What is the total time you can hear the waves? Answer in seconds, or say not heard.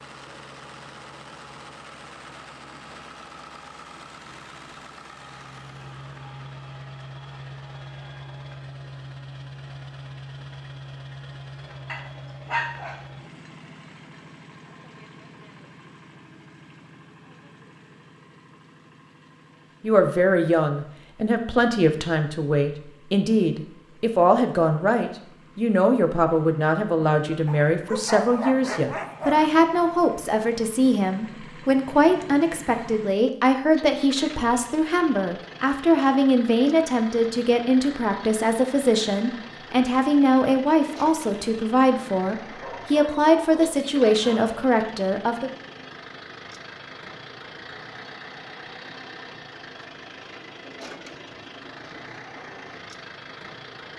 not heard.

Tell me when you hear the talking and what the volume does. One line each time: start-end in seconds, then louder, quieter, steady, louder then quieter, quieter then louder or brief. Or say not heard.
19.8-45.5 steady.